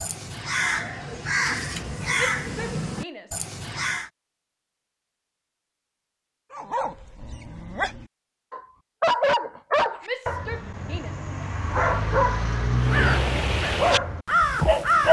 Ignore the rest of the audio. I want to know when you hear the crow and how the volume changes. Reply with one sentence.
You can hear the crow from 0.0 to 4.1 s, getting quieter; and briefly from 12.8 to 15.0 s.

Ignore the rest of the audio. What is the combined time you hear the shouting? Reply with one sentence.
You can hear the shouting for 2 seconds altogether.